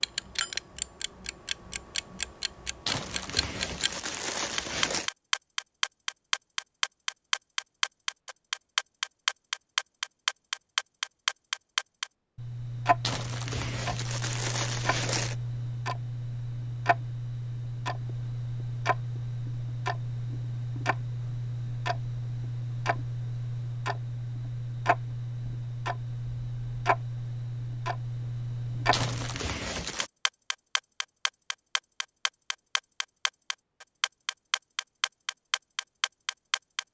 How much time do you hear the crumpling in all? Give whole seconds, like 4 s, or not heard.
6 s.